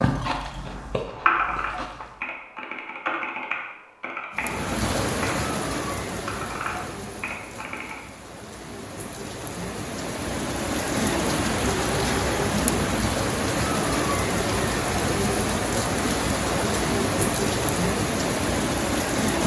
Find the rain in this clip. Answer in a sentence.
You can hear the rain from 4.3 to 19.4 s.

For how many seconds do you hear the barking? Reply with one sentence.
You can't hear the barking here.